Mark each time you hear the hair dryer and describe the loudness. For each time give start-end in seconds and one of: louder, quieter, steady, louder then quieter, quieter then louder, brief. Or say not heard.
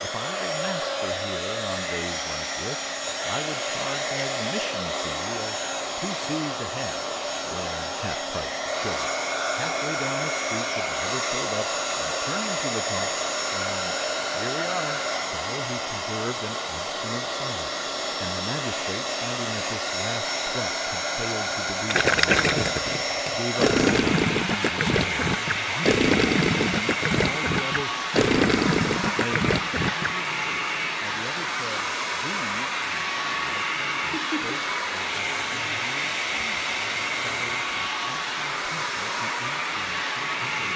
0.0-40.7 steady.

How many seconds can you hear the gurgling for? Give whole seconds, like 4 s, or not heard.
8 s.